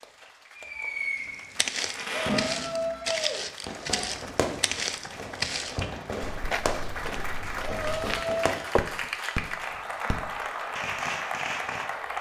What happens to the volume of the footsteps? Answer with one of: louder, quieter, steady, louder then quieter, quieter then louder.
quieter.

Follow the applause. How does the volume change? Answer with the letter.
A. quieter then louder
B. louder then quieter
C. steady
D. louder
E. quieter
D.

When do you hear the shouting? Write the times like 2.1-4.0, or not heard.
2.2-4.1, 7.6-8.4.